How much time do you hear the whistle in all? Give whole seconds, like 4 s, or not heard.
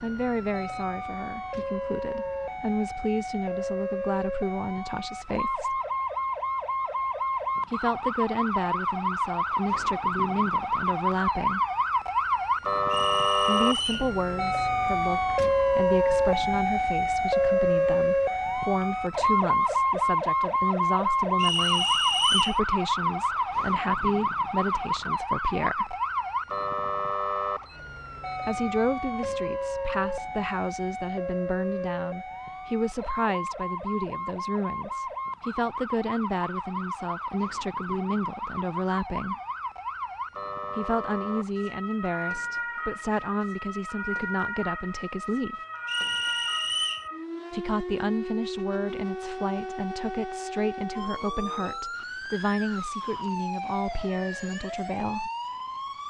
4 s.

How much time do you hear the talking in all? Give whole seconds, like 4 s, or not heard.
46 s.